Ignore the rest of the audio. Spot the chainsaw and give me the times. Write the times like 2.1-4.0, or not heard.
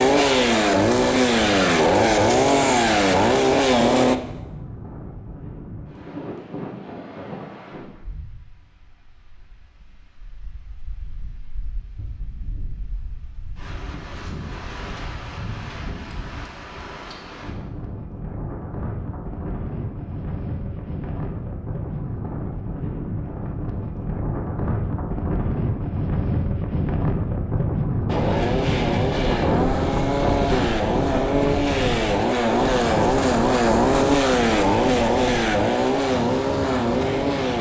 0.0-4.2, 28.1-37.5.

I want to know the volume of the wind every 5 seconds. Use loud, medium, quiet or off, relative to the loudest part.
quiet, quiet, quiet, medium, medium, loud, loud, medium.